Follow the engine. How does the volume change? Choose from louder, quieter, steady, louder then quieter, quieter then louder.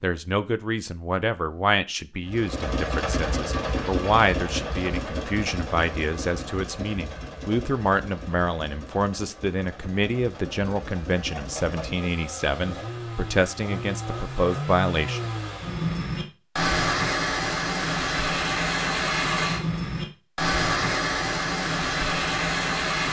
quieter then louder.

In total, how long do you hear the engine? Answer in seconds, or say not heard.
21 s.